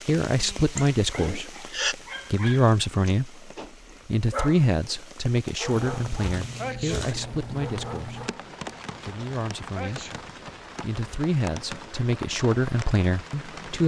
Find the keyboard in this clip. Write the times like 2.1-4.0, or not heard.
5.9-8.3.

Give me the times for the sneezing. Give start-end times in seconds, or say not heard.
0.8-1.9, 6.5-7.0, 9.8-10.2.